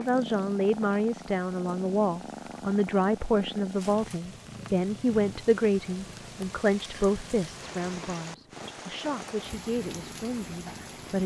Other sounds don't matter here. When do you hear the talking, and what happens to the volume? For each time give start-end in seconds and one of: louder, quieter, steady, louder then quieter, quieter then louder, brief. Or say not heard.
0.0-11.2 quieter.